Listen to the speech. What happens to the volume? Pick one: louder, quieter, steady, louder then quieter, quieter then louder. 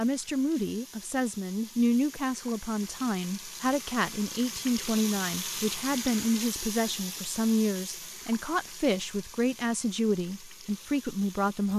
steady.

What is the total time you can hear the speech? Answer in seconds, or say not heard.
12 s.